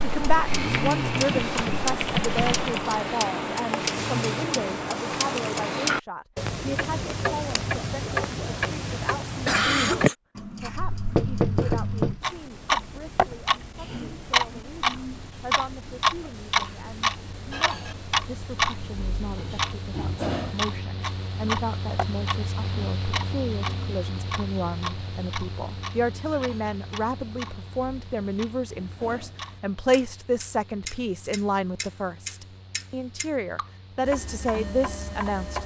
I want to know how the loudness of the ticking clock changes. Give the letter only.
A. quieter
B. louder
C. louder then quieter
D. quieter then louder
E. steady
A.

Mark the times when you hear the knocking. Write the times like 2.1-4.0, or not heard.
10.8-12.2.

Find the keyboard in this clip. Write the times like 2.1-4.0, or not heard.
0.0-3.0.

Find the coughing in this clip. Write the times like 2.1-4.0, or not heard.
9.2-10.2.